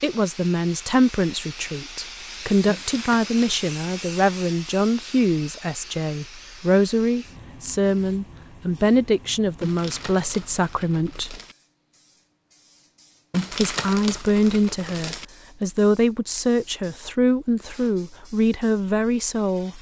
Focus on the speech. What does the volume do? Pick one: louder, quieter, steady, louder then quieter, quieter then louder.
steady.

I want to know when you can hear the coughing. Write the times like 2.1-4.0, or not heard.
not heard.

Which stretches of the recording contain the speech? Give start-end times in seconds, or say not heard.
0.0-11.4, 13.5-19.7.